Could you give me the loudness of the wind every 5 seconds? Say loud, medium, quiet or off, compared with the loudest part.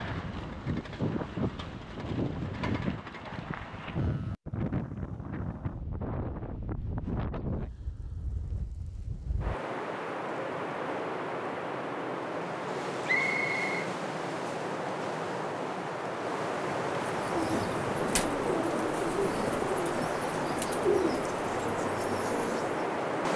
loud, medium, loud, loud, loud.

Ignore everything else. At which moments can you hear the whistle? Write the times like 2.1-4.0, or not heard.
13.1-13.9.